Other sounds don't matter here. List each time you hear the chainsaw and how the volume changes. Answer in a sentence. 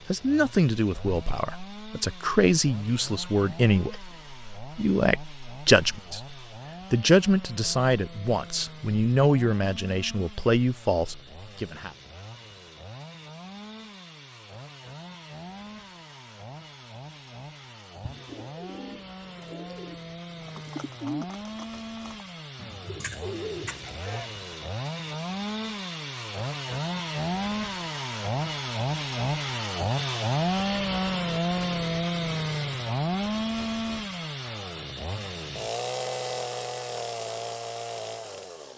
You can hear the chainsaw from 0.0 to 38.7 s, getting louder.